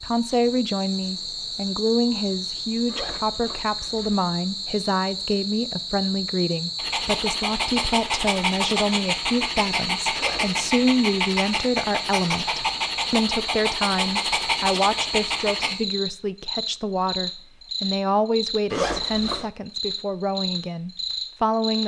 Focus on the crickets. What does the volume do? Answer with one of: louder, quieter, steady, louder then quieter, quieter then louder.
steady.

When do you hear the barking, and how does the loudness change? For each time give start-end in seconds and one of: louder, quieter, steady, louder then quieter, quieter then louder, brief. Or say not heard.
6.8-15.8 steady.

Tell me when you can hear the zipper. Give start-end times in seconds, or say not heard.
2.9-4.2, 10.2-10.6, 18.7-19.4.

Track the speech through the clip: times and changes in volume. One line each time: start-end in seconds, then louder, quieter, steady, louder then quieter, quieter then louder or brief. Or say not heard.
0.0-21.8 steady.